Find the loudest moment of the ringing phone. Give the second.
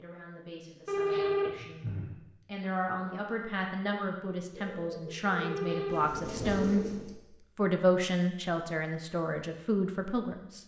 1 s.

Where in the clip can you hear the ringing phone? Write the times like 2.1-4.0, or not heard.
0.8-2.1, 5.4-7.0.